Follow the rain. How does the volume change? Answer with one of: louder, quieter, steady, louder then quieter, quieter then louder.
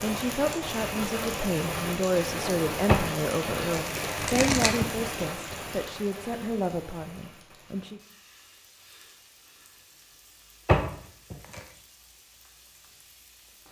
quieter.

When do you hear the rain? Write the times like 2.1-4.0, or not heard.
0.0-13.6.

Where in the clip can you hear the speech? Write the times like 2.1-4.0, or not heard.
0.0-8.0.